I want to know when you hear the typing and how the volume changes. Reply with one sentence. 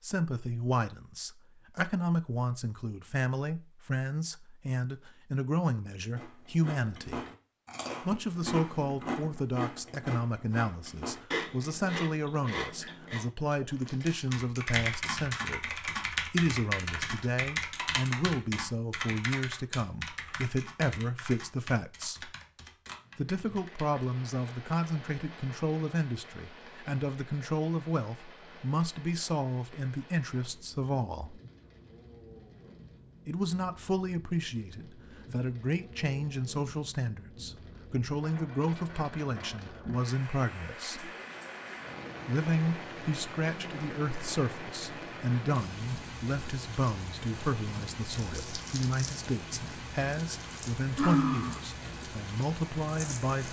You can hear the typing from 14.0 to 24.1 s, getting quieter.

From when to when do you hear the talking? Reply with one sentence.
The talking can be heard from 0.0 to 7.2 s, from 8.0 to 22.3 s, from 23.1 to 31.4 s, from 33.2 to 41.1 s and from 42.2 to 53.4 s.